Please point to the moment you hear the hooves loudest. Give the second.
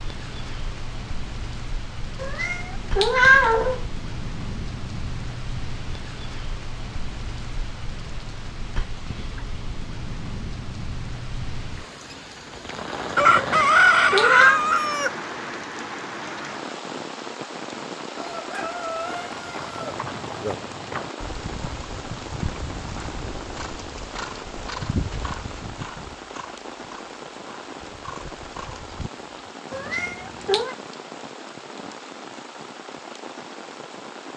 25 s.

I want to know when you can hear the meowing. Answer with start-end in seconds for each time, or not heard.
2.2-3.9, 13.3-14.6, 29.7-30.8.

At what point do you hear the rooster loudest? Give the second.
14 s.